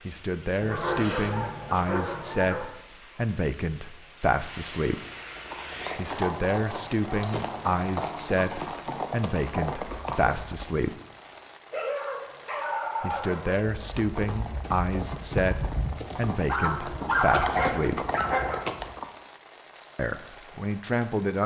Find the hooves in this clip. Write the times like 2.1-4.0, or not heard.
5.2-10.8, 13.6-19.1.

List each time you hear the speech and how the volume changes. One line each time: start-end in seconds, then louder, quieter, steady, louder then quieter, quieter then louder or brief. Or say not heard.
0.1-5.0 steady
6.0-11.0 steady
13.0-18.1 steady
19.9-21.4 brief.